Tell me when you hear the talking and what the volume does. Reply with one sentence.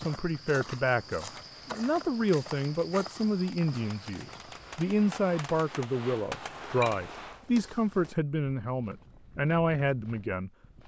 You can hear the talking from 0.0 to 10.5 s, at a steady volume.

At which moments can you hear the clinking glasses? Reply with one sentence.
The clinking glasses can be heard from 6.5 to 7.0 s.